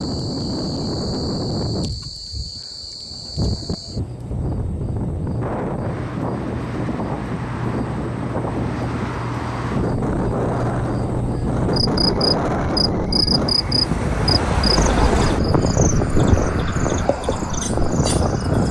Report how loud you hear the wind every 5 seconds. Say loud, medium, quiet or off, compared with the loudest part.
medium, medium, loud, loud.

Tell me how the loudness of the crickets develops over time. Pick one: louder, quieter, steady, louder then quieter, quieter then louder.
louder then quieter.